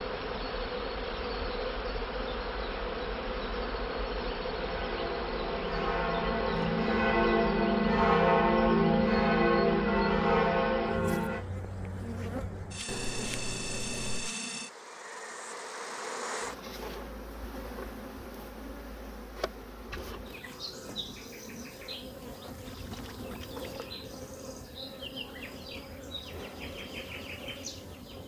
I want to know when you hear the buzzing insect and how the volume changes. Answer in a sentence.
You can hear the buzzing insect from 0.0 to 28.2 s, getting quieter.